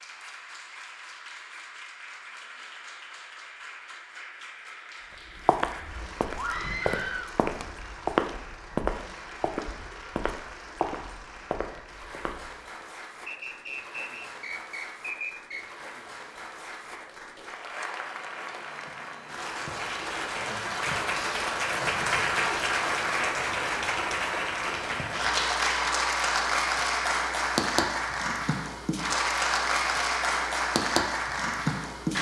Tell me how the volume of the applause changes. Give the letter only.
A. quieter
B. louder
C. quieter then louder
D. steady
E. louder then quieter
B.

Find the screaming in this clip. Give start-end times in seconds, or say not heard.
6.3-7.3.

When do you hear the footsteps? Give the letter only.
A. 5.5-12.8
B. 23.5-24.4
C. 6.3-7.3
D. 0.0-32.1
A.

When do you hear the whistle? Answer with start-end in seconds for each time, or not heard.
13.2-15.7.